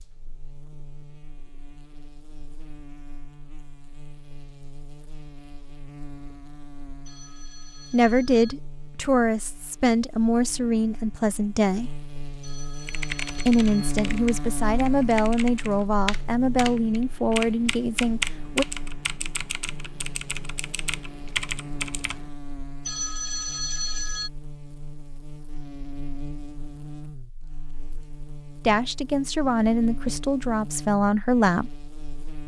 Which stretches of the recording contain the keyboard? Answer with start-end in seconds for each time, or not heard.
12.8-22.3.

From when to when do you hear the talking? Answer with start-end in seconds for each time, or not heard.
7.9-11.9, 13.4-18.6, 28.6-31.7.